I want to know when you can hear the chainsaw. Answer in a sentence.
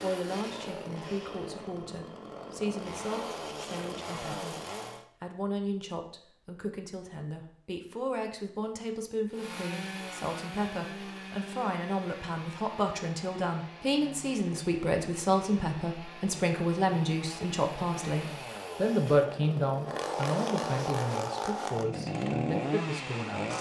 You can hear the chainsaw from 0.0 to 5.0 s and from 9.3 to 23.5 s.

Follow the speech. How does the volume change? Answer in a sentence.
The volume of the speech goes up.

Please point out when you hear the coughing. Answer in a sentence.
You can't hear the coughing here.